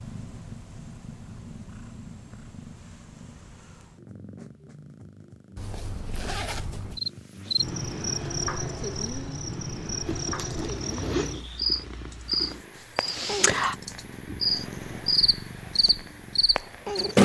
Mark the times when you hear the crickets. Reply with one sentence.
The crickets can be heard from 7.0 to 17.2 s.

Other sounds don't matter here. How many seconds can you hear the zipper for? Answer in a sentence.
You can hear the zipper for 3 seconds altogether.